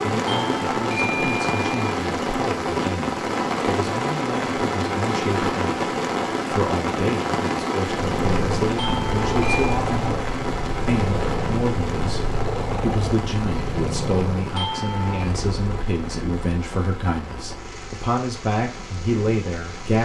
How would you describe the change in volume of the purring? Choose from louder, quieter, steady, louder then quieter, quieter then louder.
quieter.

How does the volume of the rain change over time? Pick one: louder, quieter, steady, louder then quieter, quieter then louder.
quieter.